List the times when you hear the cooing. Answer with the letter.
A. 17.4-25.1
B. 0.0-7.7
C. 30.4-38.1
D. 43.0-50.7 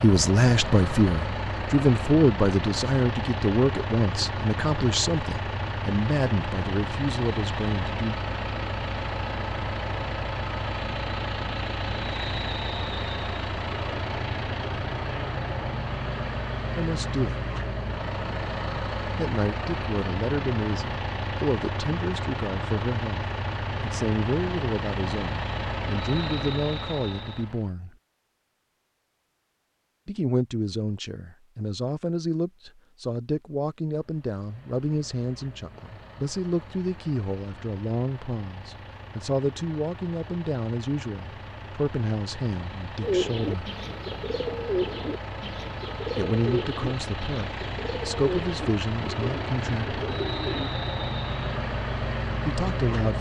D.